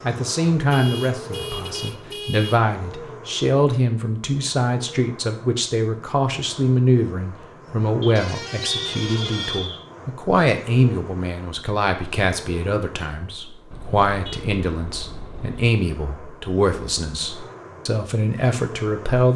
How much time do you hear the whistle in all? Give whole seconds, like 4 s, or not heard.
2 s.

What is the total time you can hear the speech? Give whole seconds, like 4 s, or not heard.
19 s.